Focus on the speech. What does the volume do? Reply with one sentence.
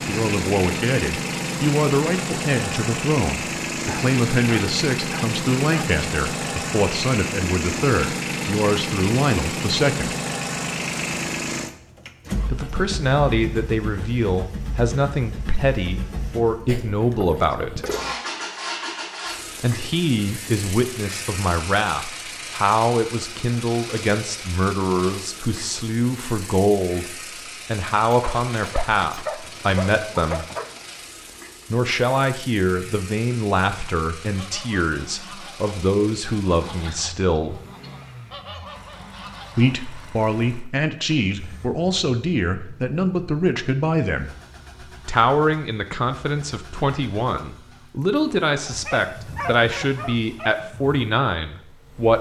The volume of the speech stays about the same.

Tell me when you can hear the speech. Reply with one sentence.
The speech can be heard from 0.1 to 10.2 s, from 12.5 to 17.8 s, from 19.6 to 30.4 s, from 31.7 to 37.6 s, from 39.5 to 44.3 s and from 45.0 to 52.1 s.